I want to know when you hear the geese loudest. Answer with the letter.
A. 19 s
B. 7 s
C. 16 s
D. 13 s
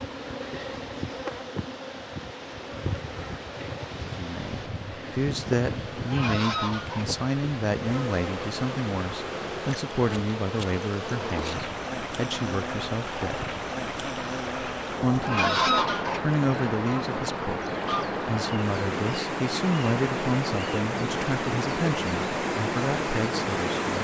C.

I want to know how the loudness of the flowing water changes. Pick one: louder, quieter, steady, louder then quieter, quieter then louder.
louder.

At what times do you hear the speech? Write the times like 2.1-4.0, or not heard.
4.0-13.4, 15.0-23.9.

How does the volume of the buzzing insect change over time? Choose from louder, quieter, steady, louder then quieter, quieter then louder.
steady.